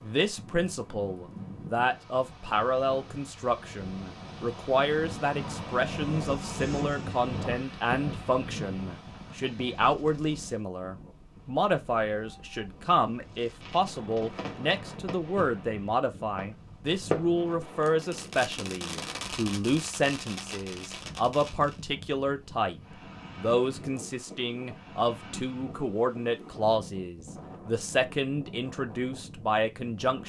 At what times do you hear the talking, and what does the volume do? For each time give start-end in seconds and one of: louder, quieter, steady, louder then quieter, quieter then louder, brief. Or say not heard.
0.0-30.2 steady.